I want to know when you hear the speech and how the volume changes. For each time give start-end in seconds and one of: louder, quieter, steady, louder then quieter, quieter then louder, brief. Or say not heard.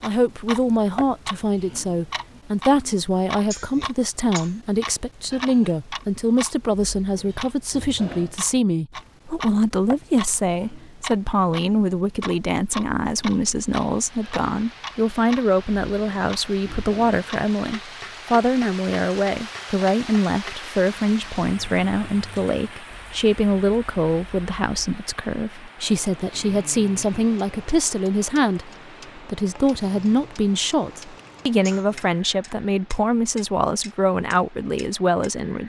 0.0-35.6 steady.